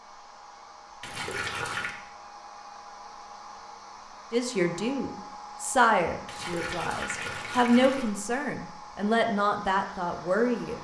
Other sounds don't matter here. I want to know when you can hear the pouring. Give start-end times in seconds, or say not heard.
1.0-1.9, 6.2-8.2.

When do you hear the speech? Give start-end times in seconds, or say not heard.
4.3-10.7.